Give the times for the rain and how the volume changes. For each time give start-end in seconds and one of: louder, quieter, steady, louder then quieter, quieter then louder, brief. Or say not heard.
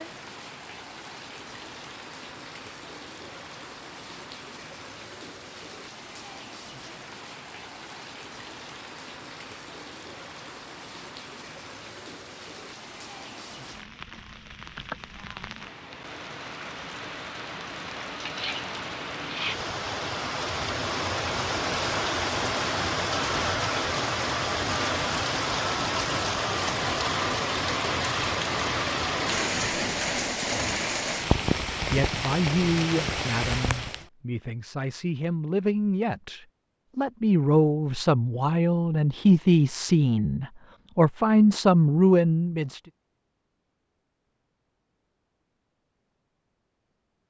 0.0-34.0 louder.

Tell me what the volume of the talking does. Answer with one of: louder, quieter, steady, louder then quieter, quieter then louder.
louder.